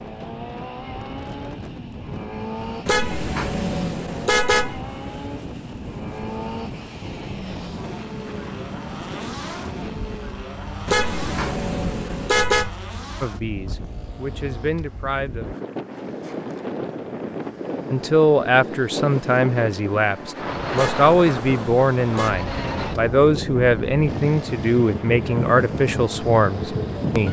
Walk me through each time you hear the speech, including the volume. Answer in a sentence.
The speech can be heard briefly from 13.2 to 15.5 s; and from 17.9 to 27.2 s, at a steady volume.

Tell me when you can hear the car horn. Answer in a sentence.
You can hear the car horn from 2.9 to 4.8 s, from 10.8 to 12.7 s and from 20.8 to 22.4 s.